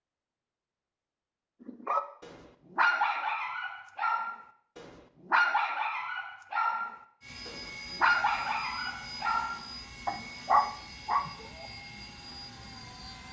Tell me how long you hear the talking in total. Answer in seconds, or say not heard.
not heard.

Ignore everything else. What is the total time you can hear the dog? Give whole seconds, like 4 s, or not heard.
10 s.